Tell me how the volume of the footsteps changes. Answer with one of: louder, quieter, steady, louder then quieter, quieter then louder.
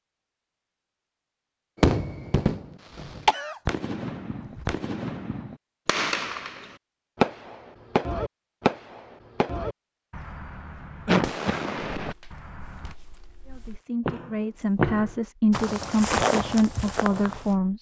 louder.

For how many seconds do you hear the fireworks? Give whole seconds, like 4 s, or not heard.
11 s.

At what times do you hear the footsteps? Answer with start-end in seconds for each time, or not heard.
11.9-17.6.